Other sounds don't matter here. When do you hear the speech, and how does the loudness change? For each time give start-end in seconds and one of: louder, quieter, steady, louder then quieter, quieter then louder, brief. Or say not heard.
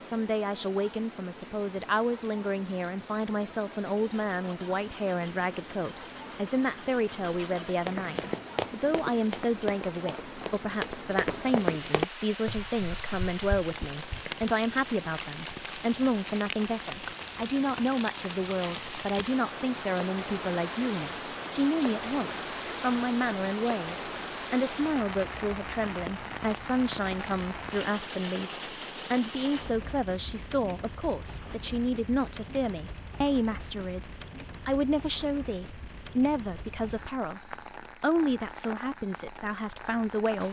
0.0-40.4 steady.